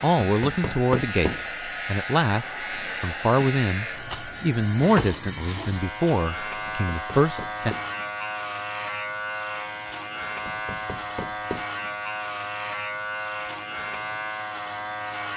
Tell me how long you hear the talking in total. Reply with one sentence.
The talking can be heard for 8 seconds in total.